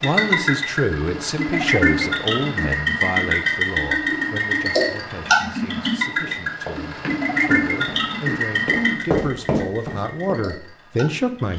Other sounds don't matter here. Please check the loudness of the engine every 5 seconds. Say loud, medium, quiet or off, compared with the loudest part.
loud, loud, quiet.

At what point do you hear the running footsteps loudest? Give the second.
9 s.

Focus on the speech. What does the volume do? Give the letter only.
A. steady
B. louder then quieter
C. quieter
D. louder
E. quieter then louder
E.